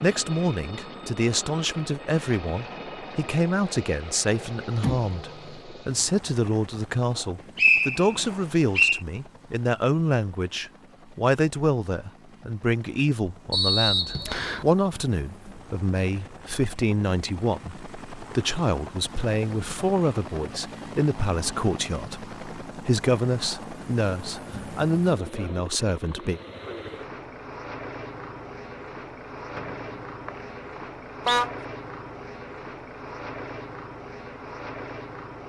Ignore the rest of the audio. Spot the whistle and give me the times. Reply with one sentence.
The whistle can be heard from 7.5 to 9.0 s, from 13.5 to 14.7 s and from 29.6 to 31.4 s.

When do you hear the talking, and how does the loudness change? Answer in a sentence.
The talking can be heard from 0.0 to 26.4 s, at a steady volume.